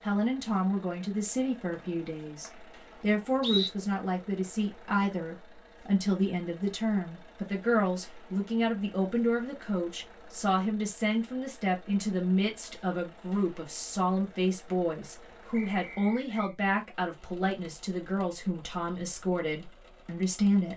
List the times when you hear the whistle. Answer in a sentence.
The whistle can be heard from 1.7 to 3.7 s and from 15.5 to 16.6 s.